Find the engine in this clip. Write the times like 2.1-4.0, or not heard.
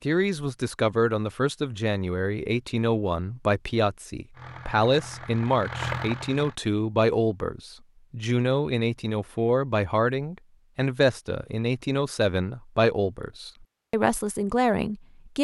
4.3-6.5.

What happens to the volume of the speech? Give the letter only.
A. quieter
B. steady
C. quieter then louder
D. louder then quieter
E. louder
B.